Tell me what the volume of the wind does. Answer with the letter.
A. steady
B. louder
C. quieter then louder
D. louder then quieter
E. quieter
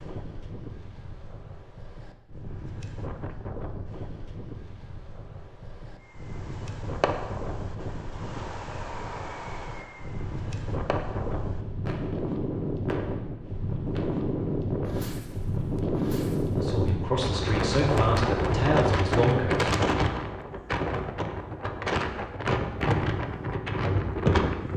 B.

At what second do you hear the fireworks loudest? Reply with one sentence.
The volume of the fireworks peaks at 7 seconds.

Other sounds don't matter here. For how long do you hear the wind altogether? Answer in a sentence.
You can hear the wind for 25 seconds altogether.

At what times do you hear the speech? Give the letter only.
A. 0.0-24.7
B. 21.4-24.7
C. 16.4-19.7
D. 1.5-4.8
C.